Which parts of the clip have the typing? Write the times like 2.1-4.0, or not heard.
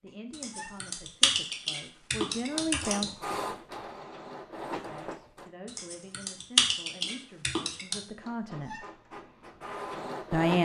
0.3-3.1, 5.7-8.0.